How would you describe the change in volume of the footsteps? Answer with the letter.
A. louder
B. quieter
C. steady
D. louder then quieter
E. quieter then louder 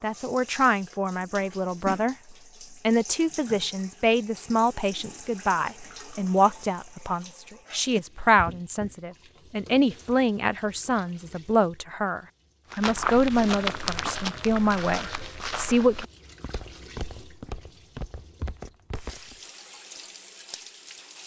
B.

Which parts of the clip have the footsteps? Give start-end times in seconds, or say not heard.
12.7-19.4.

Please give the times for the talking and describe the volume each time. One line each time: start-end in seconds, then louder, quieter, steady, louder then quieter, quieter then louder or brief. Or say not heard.
0.0-2.1 brief
2.9-16.1 steady.